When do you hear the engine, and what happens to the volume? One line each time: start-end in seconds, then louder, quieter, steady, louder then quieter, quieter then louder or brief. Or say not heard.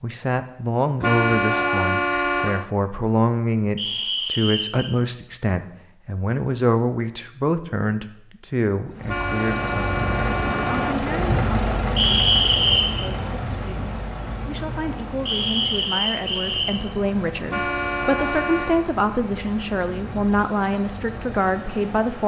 8.8-22.2 quieter.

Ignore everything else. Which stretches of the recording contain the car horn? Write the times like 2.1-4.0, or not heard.
1.0-2.6, 9.1-11.1, 17.4-18.9.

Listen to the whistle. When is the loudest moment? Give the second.
12 s.